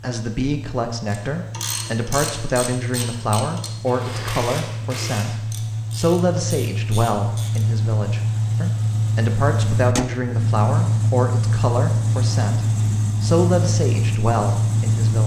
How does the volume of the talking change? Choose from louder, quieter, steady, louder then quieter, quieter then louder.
steady.